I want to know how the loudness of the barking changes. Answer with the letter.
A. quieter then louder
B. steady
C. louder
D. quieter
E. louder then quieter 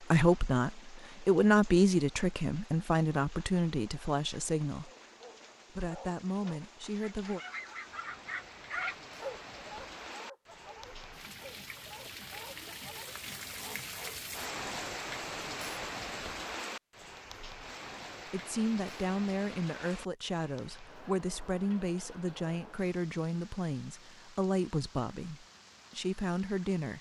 E.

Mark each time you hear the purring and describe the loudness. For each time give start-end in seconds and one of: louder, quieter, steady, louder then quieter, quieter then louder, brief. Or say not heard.
not heard.